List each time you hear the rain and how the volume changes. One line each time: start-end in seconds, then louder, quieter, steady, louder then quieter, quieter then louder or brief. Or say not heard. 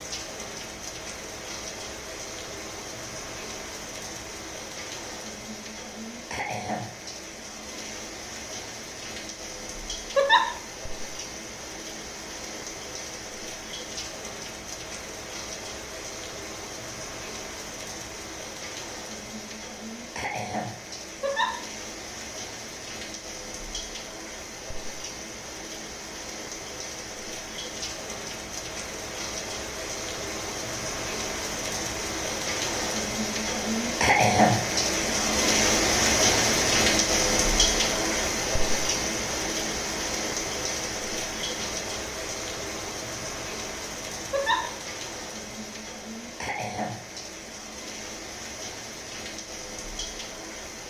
0.0-50.8 louder then quieter.